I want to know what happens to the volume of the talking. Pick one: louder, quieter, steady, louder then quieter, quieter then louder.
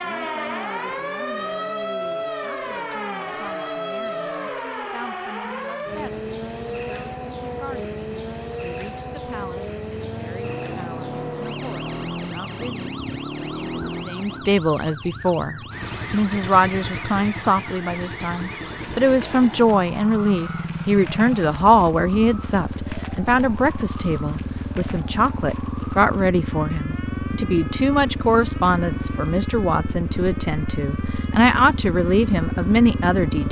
louder.